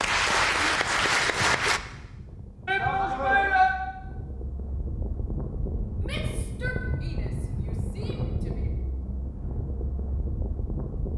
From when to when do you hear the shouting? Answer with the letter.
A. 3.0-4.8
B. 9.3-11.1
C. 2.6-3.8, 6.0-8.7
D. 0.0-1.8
C.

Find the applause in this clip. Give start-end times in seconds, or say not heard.
0.0-1.8.